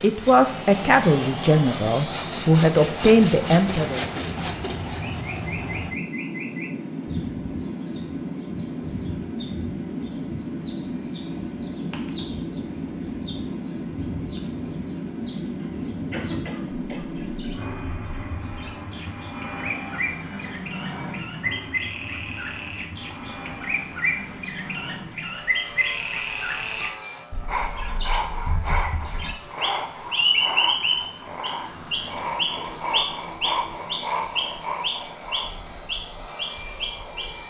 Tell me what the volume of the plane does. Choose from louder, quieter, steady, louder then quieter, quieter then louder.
quieter.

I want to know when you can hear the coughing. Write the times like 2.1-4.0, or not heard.
15.6-17.2.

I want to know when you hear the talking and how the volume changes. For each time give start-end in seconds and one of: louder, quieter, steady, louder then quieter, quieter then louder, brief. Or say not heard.
0.0-4.0 quieter then louder.